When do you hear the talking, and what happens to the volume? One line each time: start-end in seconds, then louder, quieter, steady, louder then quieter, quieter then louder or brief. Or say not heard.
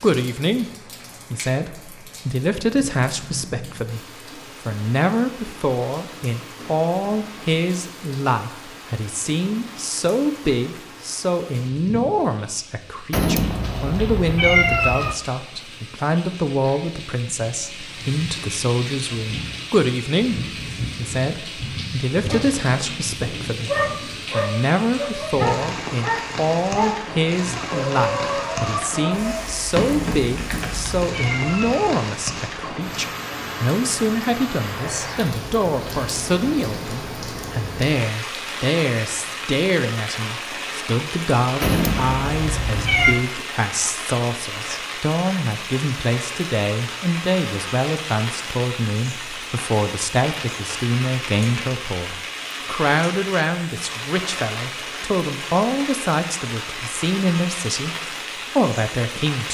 0.0-59.5 steady.